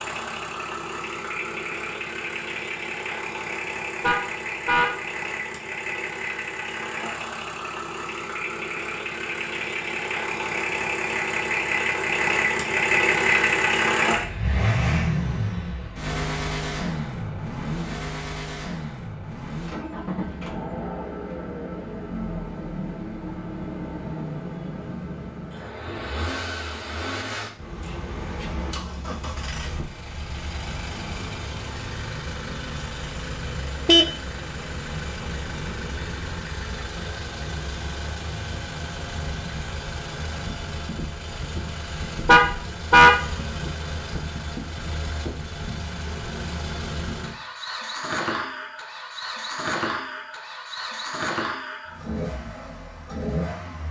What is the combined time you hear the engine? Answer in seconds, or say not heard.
54 s.